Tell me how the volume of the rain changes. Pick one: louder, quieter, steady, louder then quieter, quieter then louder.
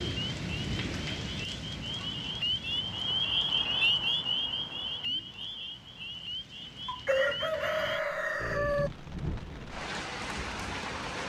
quieter then louder.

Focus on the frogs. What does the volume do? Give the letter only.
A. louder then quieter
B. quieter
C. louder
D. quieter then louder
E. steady
A.